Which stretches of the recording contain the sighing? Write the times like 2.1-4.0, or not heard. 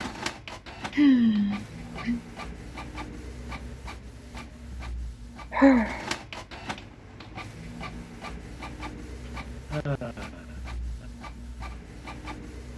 0.9-2.2, 5.5-6.0, 9.7-11.1.